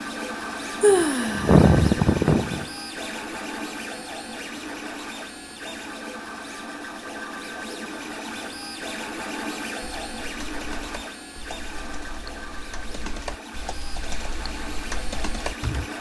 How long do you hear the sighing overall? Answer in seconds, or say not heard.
2 s.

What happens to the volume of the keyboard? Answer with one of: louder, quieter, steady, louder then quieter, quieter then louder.
louder.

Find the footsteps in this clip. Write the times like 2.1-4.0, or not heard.
not heard.